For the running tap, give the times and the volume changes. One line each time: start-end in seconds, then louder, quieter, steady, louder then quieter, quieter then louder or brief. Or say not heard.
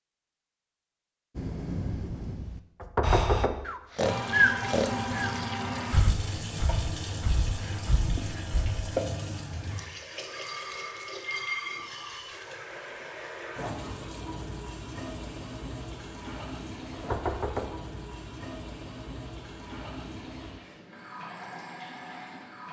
4.0-22.6 quieter.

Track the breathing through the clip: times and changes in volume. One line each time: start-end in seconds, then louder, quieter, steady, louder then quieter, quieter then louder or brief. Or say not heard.
1.4-8.9 louder then quieter.